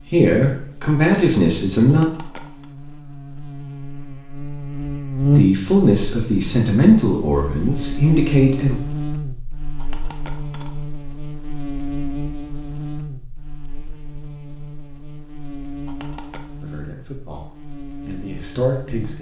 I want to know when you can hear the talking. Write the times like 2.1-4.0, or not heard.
0.1-2.0, 5.3-8.8, 16.6-19.1.